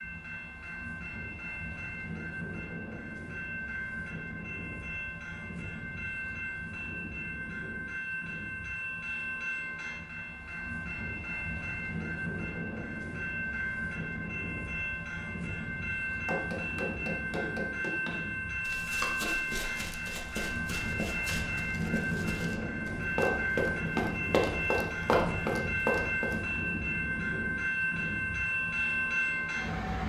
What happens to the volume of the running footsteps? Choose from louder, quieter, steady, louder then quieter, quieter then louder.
louder.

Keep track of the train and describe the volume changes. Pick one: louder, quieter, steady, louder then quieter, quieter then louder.
louder.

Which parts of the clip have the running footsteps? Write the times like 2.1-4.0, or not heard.
16.2-26.4.